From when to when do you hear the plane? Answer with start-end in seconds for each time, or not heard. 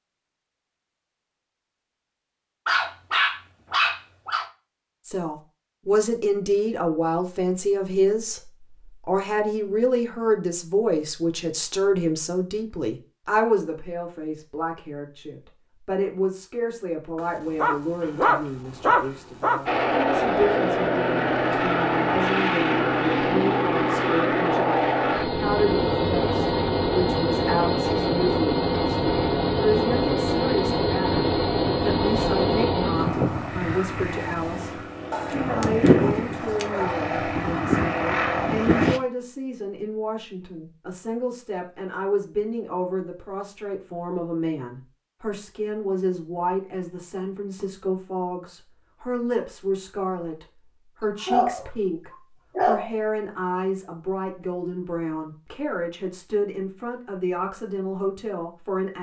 19.6-39.0.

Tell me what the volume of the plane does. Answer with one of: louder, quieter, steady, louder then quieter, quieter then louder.
steady.